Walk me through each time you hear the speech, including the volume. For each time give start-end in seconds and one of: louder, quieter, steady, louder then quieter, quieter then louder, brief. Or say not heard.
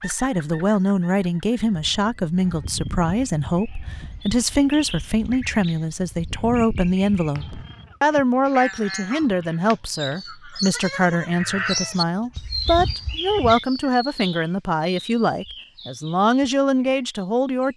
0.0-17.7 steady.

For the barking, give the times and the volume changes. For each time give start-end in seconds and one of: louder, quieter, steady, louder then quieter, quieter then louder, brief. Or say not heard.
not heard.